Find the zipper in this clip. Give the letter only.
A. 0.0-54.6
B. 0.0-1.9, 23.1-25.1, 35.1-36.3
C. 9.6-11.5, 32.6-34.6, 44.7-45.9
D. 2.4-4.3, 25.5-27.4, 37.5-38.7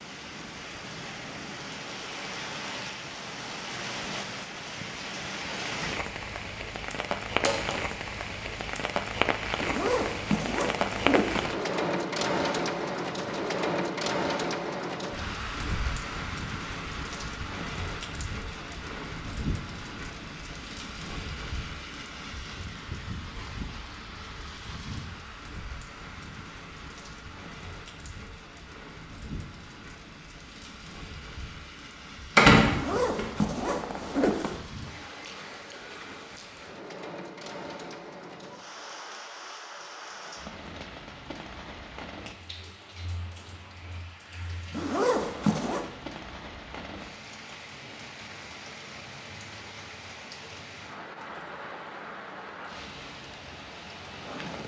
C.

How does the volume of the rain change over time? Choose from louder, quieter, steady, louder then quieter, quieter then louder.
quieter.